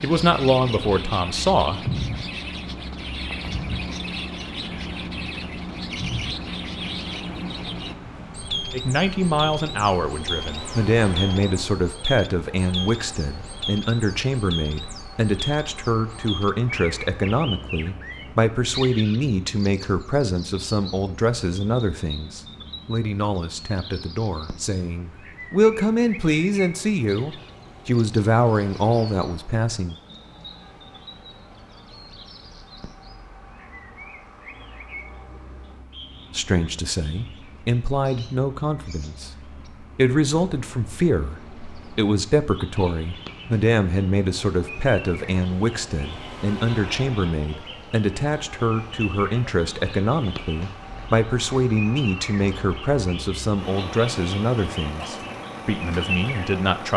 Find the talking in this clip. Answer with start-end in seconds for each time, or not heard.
0.0-1.8, 8.7-29.9, 36.3-56.9.